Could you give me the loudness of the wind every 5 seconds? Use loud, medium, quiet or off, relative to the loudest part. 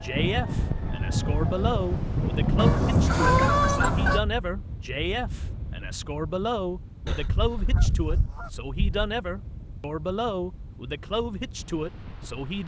loud, quiet, quiet.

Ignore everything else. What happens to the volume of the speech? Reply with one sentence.
The loudness of the speech stays about the same.